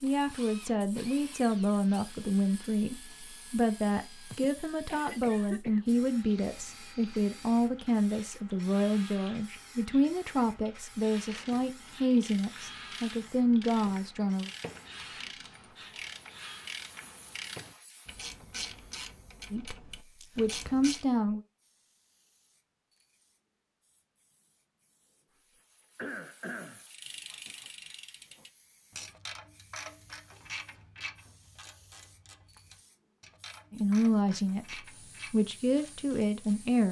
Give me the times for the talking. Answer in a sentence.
The talking can be heard from 0.0 to 14.5 s, from 19.5 to 21.4 s and from 33.7 to 36.8 s.